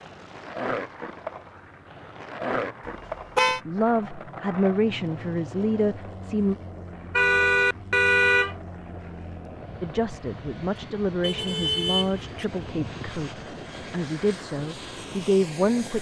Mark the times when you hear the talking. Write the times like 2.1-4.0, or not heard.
3.5-6.5, 9.8-13.3, 13.9-15.9.